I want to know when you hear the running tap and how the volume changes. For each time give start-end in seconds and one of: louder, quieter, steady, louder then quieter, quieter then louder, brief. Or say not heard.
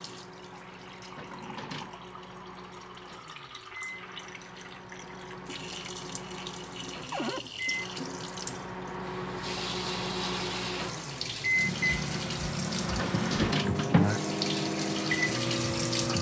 0.0-16.1 louder.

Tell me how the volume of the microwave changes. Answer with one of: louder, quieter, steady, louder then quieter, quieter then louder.
louder.